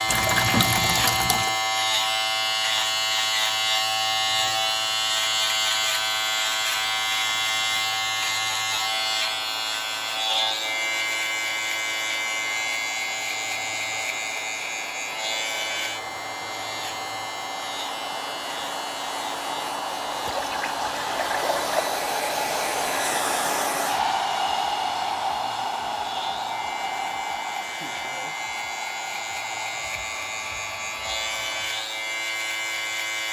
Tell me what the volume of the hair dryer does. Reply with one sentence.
The loudness of the hair dryer goes up, then down.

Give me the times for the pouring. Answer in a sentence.
You can hear the pouring from 0.1 to 1.6 s and from 20.2 to 21.8 s.